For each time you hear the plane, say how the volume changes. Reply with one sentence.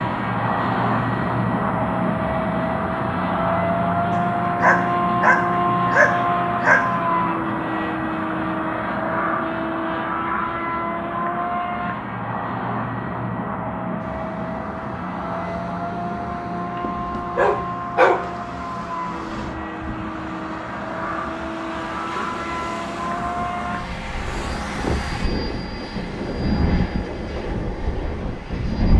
You can hear the plane from 0.0 to 28.9 s, getting quieter.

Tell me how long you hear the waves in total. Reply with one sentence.
The waves can be heard for 15 seconds in total.